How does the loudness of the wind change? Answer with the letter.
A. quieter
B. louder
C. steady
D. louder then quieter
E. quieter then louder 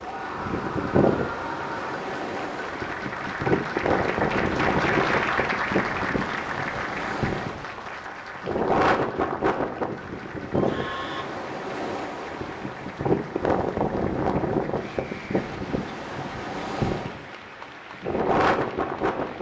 C.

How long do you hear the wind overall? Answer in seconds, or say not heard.
19 s.